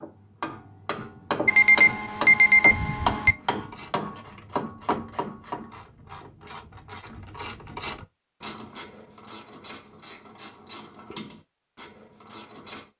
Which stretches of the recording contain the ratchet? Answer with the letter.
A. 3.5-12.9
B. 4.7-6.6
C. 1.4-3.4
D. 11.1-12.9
A.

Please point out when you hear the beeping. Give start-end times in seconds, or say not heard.
1.4-3.4.